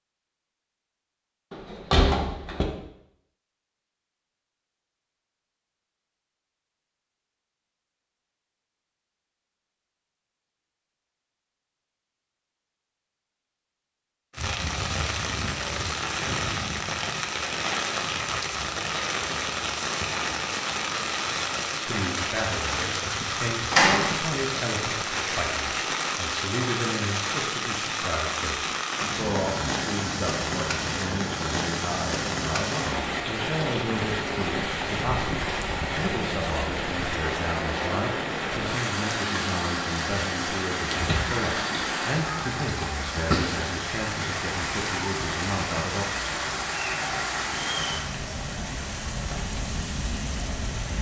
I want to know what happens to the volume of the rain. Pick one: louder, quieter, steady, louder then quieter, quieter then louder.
steady.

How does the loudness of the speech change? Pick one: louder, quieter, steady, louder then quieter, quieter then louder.
steady.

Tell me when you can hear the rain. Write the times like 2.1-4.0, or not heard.
14.3-50.9.